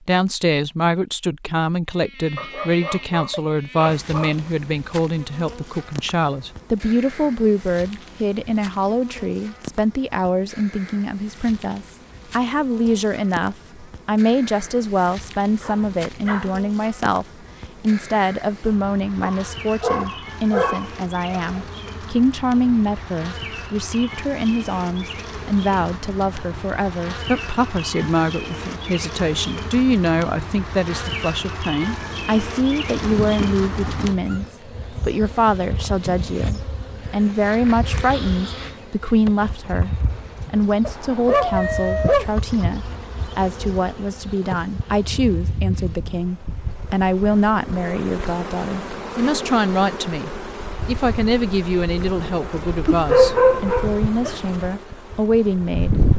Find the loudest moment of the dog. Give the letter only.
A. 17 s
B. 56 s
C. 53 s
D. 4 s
C.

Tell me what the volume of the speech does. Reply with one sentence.
The volume of the speech stays about the same.